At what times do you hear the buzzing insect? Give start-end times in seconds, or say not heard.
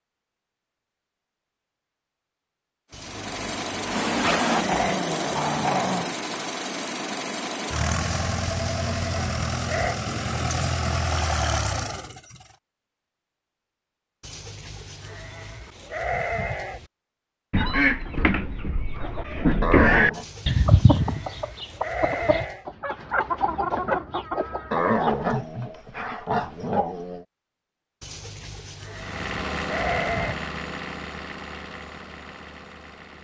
not heard.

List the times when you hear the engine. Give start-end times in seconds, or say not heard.
2.9-12.5, 28.9-33.1.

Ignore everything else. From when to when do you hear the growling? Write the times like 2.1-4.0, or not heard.
4.2-6.2, 19.6-20.2, 24.7-27.2.